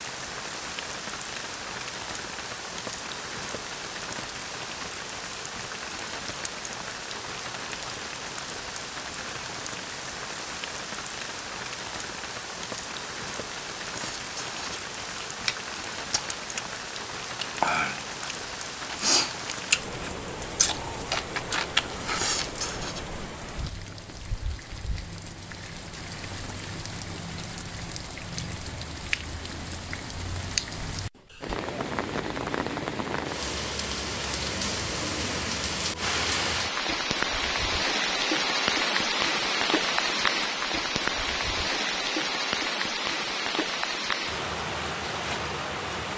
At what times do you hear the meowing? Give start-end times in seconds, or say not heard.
not heard.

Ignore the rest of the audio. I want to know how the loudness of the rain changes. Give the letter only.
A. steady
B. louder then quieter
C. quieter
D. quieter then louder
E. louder
E.